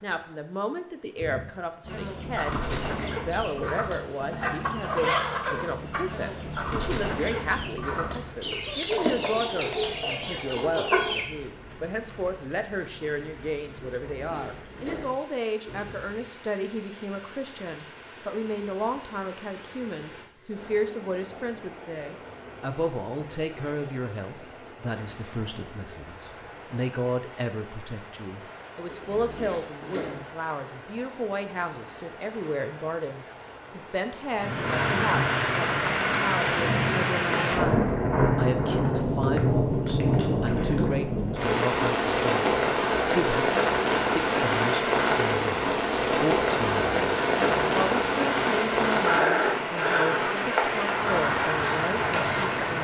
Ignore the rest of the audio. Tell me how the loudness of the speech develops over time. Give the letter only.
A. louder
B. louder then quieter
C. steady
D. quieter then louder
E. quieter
C.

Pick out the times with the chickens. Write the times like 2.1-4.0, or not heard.
1.9-11.2.